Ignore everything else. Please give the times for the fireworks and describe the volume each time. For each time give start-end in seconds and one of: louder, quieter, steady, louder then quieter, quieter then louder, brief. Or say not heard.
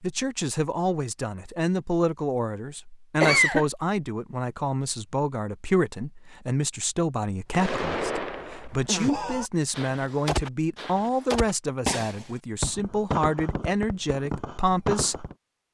7.5-15.3 steady.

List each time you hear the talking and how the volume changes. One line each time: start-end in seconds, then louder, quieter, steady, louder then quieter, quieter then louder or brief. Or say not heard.
0.0-15.2 steady.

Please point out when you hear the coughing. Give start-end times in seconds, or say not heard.
3.2-3.6.